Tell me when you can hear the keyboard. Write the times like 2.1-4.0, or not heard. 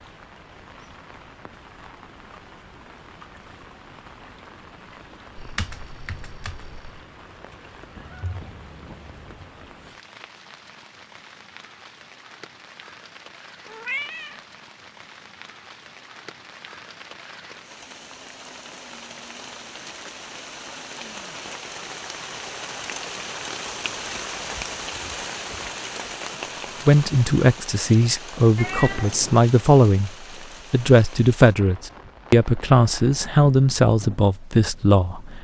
5.3-7.0.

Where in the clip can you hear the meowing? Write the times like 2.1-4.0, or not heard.
8.0-9.5, 13.7-14.4, 28.6-29.4.